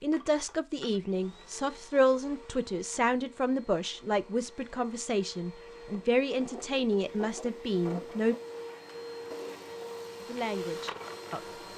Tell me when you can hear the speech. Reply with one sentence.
The speech can be heard from 0.0 to 8.3 s and from 10.2 to 11.6 s.